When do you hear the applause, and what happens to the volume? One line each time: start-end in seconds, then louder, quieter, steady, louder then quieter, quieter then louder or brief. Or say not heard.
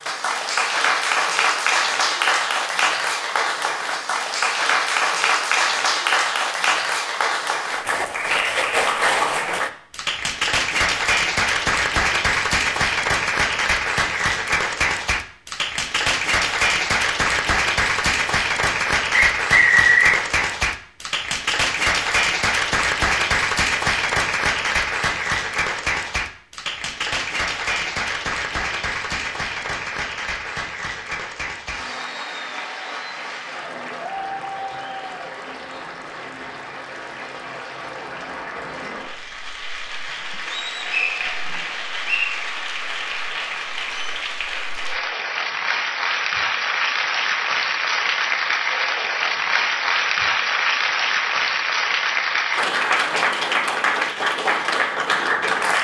0.0-55.7 quieter then louder.